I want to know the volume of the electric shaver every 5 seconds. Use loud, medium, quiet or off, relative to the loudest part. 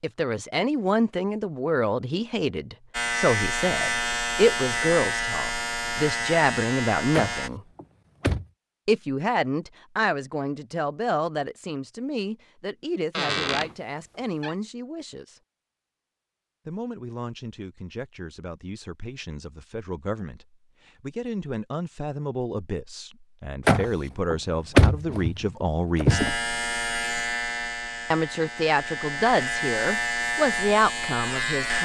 loud, loud, off, off, off, loud, loud.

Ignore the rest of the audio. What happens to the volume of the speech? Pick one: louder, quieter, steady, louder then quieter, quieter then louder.
quieter then louder.